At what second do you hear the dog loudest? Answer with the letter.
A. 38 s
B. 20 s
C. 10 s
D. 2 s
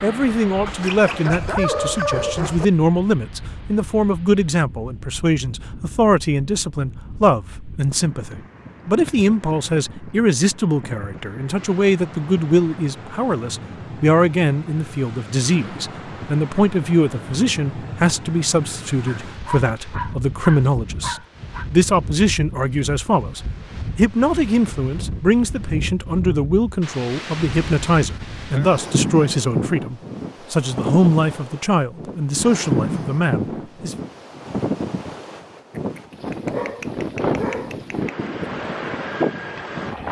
D.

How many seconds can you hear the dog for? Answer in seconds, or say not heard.
7 s.